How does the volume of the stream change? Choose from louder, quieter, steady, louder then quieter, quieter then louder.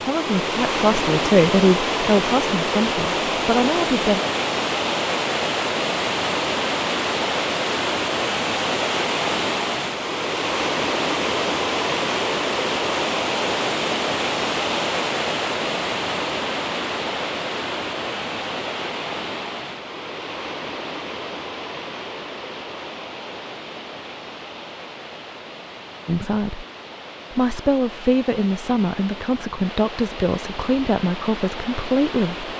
quieter.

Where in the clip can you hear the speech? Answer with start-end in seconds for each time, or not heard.
0.0-4.2, 26.1-26.6, 27.3-32.5.